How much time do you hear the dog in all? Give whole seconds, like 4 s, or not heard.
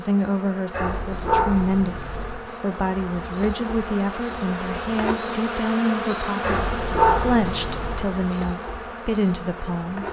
3 s.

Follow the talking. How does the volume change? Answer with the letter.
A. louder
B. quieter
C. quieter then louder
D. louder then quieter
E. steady
E.